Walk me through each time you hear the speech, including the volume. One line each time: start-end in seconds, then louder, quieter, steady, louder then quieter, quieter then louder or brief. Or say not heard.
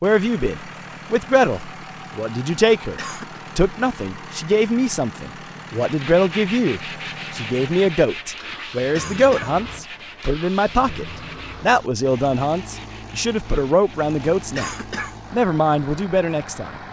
0.0-14.7 steady
15.3-16.8 brief.